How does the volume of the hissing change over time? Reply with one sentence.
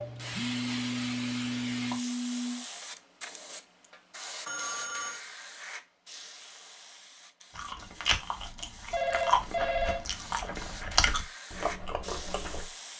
The loudness of the hissing goes down, then up.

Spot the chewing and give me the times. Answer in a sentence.
The chewing can be heard from 7.5 to 12.7 s.